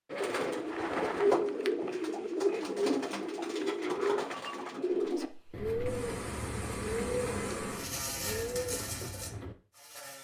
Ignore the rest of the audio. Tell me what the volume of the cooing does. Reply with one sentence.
The volume of the cooing goes down.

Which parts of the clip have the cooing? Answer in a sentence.
The cooing can be heard from 0.1 to 9.6 s.